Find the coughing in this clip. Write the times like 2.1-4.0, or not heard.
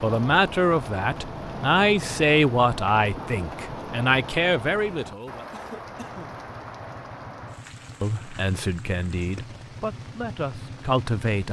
5.5-6.5.